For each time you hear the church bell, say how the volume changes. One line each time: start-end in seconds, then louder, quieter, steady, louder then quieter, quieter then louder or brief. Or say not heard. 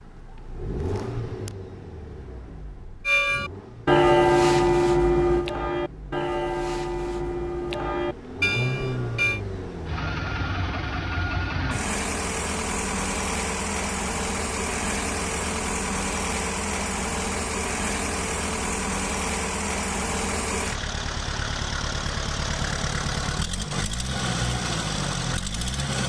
3.0-9.4 quieter.